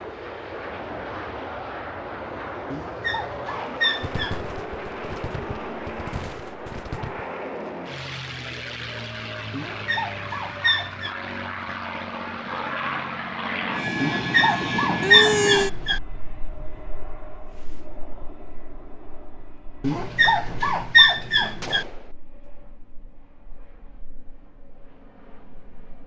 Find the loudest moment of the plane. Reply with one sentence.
The volume of the plane peaks at 15 seconds.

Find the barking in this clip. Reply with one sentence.
You can hear the barking from 2.7 to 4.4 s, from 9.5 to 11.2 s, from 14.0 to 16.0 s and from 19.8 to 21.9 s.